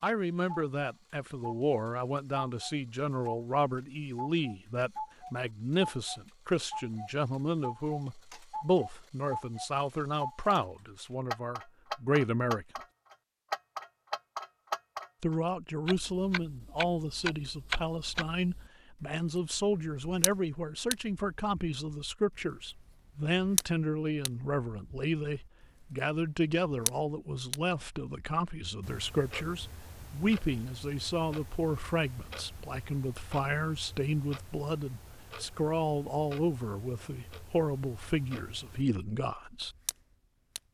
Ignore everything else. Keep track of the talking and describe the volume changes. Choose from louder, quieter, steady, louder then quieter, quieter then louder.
steady.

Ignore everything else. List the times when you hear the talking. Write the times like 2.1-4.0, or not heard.
0.0-12.7, 15.2-39.8.